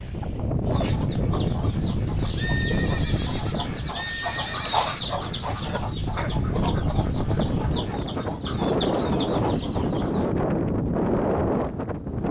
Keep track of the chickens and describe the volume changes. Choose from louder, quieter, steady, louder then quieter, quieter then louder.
louder then quieter.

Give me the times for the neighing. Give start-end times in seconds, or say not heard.
2.4-4.8.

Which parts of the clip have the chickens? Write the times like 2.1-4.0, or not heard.
0.7-10.3.